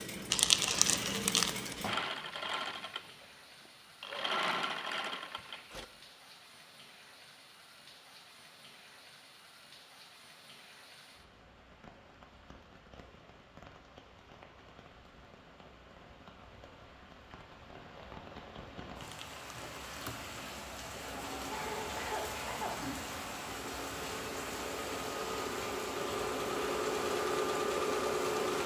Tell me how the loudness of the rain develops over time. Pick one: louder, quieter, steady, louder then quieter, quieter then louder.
louder.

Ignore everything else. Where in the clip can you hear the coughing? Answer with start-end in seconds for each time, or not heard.
21.5-22.8.